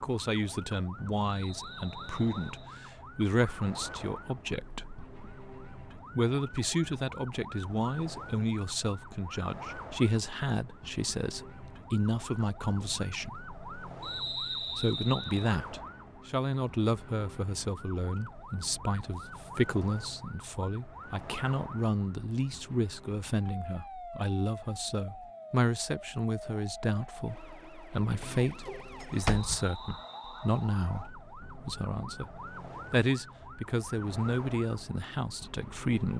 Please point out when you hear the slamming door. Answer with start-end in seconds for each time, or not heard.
29.0-30.0.